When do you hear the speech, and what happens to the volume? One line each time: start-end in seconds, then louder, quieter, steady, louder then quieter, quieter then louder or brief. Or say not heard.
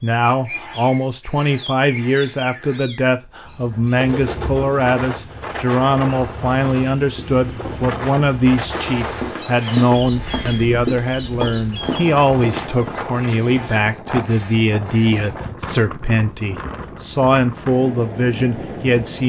0.0-19.2 steady.